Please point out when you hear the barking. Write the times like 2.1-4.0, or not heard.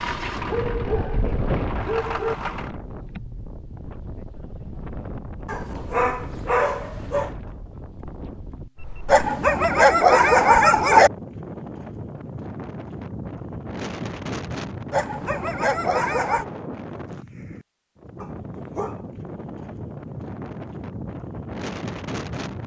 0.5-2.4, 5.5-7.3, 9.1-11.1, 14.9-16.4, 18.2-19.0.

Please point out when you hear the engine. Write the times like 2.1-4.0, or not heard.
0.0-2.8.